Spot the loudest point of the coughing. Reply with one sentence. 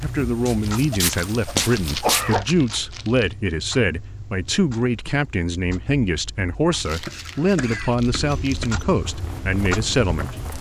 The loudest moment of the coughing is at 2 seconds.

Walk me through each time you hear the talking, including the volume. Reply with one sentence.
The talking can be heard from 0.0 to 10.4 s, at a steady volume.